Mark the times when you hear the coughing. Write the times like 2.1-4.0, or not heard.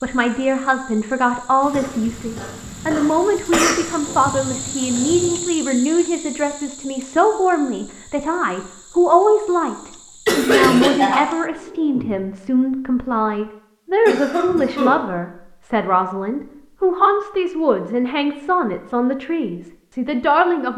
1.7-3.8, 10.2-12.1, 14.1-15.0.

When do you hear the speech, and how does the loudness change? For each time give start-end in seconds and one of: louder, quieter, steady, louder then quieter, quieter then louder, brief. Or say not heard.
0.0-20.7 steady.